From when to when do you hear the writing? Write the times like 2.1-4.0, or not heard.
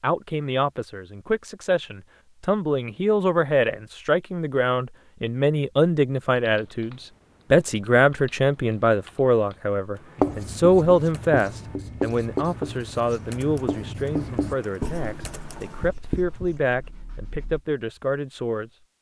10.2-17.6.